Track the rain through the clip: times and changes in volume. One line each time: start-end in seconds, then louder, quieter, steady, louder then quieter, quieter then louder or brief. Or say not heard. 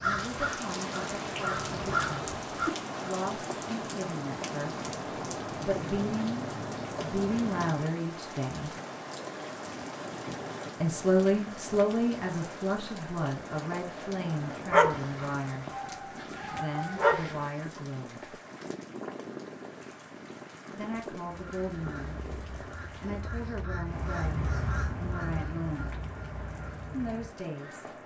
0.0-28.0 quieter.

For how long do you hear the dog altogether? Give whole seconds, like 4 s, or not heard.
3 s.